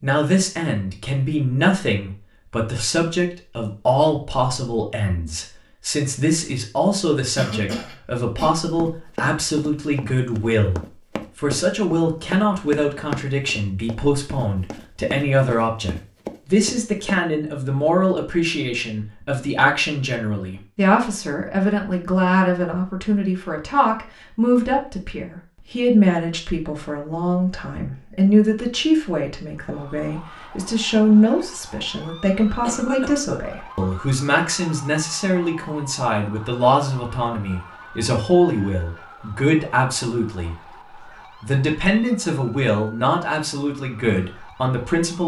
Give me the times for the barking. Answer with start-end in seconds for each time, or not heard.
not heard.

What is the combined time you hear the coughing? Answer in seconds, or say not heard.
2 s.